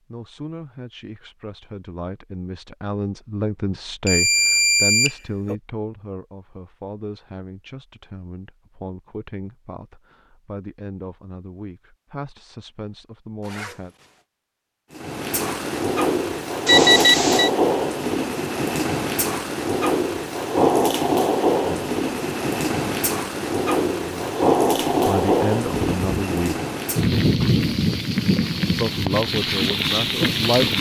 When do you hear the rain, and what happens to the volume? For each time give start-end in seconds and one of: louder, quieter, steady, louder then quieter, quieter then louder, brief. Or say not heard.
14.9-30.7 steady.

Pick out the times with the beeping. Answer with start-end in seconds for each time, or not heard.
4.0-5.5, 16.6-17.5, 25.6-26.1.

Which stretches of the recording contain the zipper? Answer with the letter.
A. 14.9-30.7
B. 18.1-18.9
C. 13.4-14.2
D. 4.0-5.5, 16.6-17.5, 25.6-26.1
C.